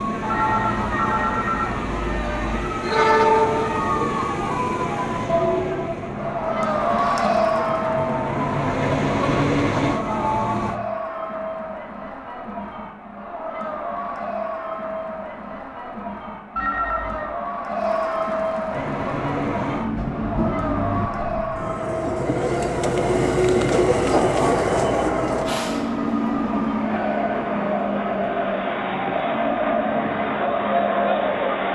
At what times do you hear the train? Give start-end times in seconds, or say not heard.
0.0-10.8, 18.7-31.7.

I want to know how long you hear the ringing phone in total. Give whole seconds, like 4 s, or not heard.
3 s.